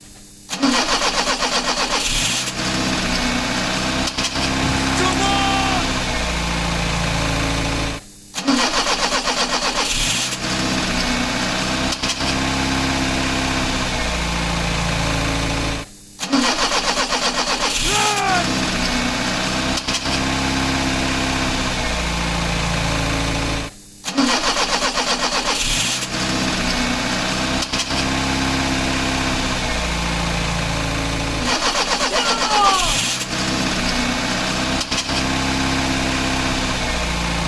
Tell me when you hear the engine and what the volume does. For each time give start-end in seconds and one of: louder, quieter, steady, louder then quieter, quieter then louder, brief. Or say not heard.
0.0-37.4 steady.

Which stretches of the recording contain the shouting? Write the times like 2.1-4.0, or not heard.
4.8-5.9, 17.8-18.6, 32.1-33.0.